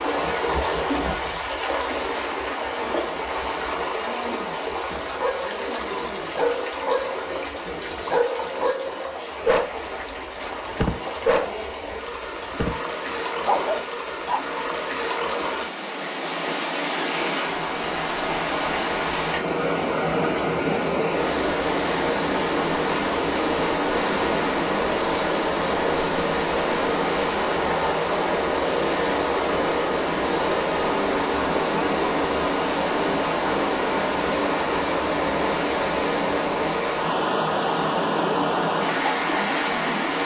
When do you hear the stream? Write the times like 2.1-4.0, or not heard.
0.0-40.2.